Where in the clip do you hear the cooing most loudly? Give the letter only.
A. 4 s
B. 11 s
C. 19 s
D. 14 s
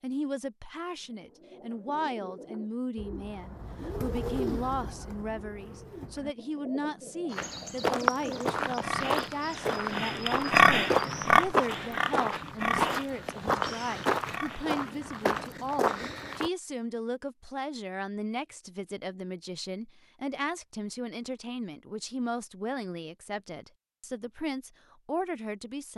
A.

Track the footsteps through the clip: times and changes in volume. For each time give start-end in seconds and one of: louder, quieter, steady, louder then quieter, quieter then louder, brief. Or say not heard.
7.3-16.5 steady.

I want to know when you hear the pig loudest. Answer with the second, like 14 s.
11 s.